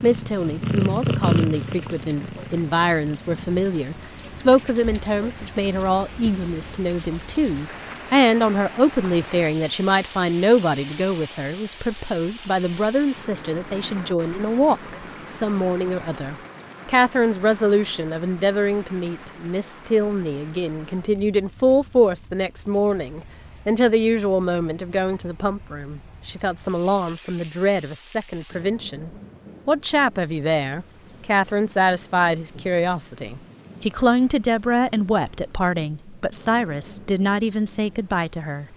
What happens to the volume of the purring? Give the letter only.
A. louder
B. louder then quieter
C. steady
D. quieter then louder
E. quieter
E.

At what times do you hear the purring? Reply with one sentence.
You can hear the purring from 0.0 to 6.8 s.